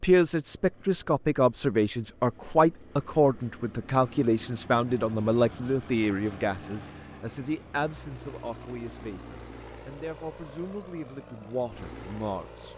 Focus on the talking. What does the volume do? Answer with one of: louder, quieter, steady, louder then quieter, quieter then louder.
quieter.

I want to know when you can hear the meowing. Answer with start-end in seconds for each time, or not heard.
not heard.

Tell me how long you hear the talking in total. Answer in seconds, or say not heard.
13 s.